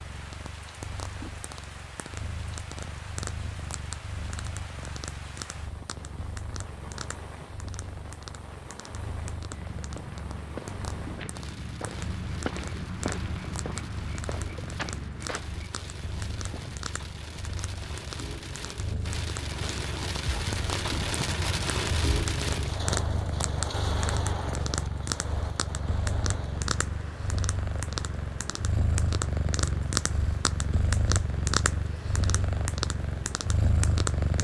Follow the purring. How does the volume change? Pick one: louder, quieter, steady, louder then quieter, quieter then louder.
louder.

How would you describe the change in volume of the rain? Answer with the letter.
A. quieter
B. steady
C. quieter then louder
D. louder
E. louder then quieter
E.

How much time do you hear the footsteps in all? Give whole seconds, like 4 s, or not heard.
7 s.